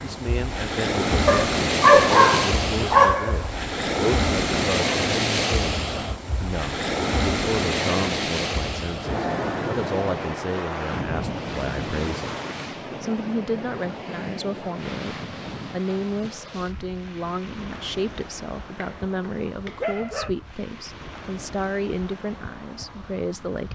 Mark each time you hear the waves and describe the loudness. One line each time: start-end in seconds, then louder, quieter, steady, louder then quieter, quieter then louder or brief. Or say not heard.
0.0-23.7 quieter.